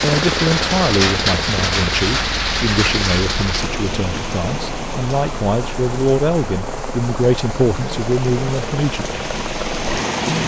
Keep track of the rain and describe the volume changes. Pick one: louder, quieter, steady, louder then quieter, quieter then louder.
quieter then louder.